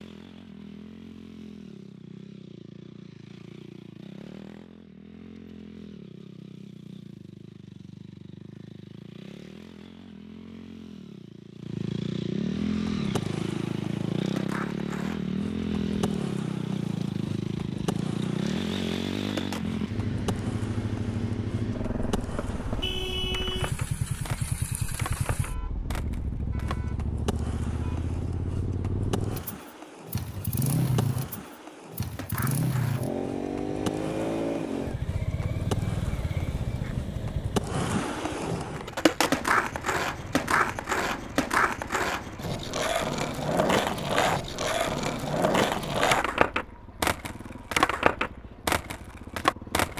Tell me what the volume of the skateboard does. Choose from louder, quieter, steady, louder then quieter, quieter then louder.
louder.